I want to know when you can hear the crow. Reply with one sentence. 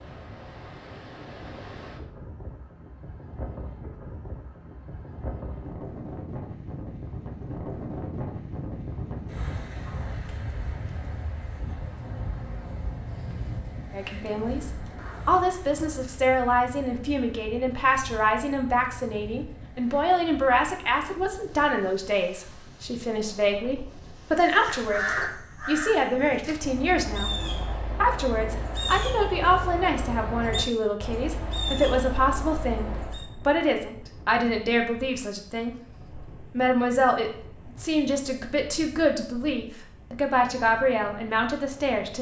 You can hear the crow from 24.4 to 33.2 s.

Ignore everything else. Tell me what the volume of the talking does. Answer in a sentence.
The volume of the talking stays about the same.